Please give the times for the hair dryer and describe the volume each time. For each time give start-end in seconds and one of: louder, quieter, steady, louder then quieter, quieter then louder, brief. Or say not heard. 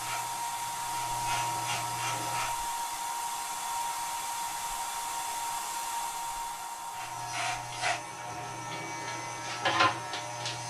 0.0-10.6 quieter.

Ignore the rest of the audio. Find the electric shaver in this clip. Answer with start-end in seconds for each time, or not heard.
0.0-2.5, 6.9-10.6.